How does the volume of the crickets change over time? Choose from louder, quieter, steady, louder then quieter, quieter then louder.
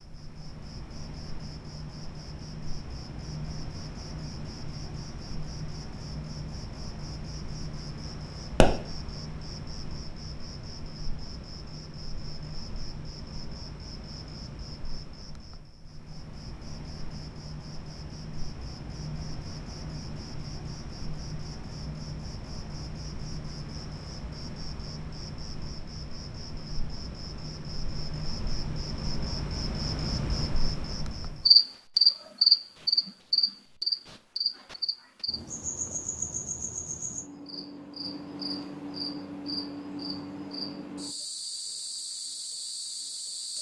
louder then quieter.